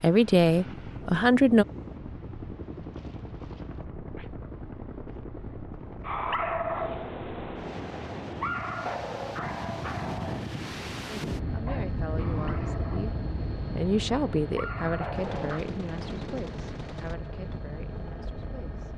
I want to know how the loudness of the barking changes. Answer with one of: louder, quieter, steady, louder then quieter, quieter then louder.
quieter then louder.